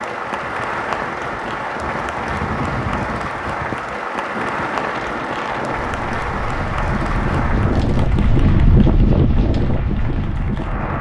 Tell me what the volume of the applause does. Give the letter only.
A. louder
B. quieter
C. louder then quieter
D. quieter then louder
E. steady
B.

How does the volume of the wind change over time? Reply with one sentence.
The loudness of the wind goes up.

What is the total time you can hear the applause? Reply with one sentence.
You can hear the applause for 11 seconds altogether.